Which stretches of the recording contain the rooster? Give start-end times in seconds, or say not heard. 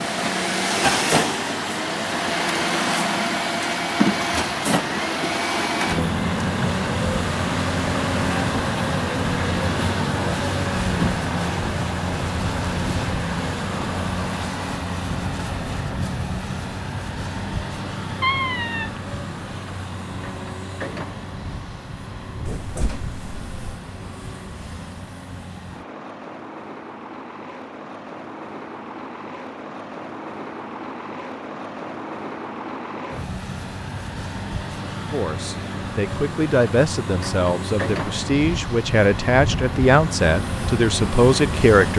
not heard.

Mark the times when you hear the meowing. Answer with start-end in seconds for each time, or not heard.
18.2-19.0, 22.4-23.8.